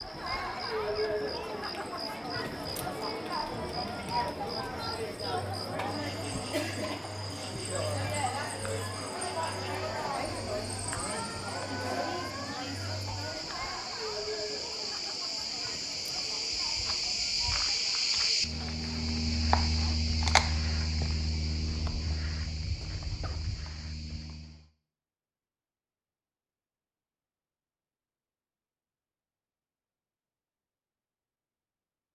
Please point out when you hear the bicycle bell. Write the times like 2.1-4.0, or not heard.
not heard.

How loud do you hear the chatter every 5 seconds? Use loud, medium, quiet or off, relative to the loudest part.
loud, loud, loud, quiet, off, off, off.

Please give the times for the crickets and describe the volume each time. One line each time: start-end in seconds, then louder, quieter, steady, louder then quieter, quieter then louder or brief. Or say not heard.
0.0-24.6 louder.